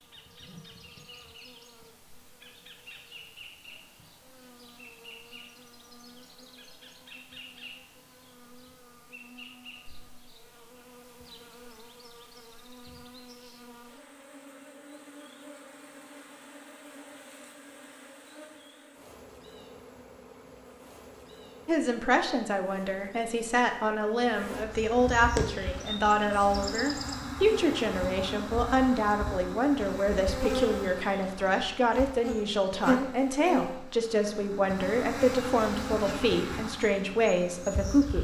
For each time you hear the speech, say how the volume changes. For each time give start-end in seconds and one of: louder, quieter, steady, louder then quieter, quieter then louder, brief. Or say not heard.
21.6-38.1 steady.